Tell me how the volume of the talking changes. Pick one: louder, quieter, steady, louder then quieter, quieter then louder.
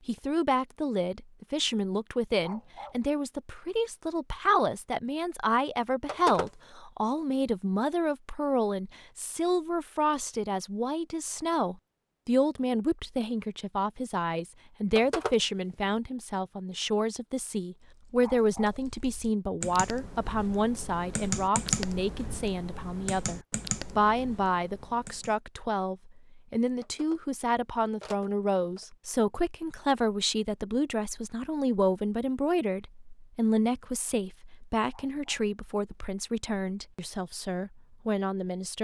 steady.